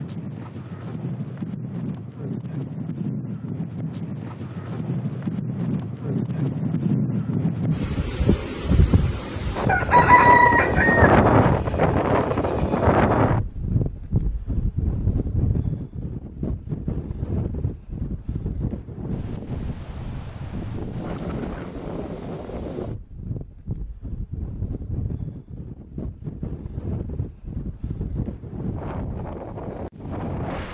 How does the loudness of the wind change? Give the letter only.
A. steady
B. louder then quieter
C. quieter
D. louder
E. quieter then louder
B.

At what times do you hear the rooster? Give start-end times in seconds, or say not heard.
9.7-11.1.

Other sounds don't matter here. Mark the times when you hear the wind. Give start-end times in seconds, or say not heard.
0.0-30.7.